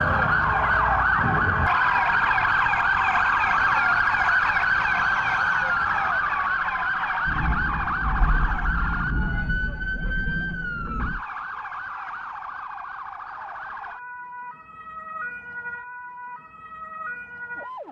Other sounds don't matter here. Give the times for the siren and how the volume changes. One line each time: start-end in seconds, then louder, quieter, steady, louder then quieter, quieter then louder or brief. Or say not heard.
0.0-17.8 quieter.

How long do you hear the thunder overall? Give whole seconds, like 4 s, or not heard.
4 s.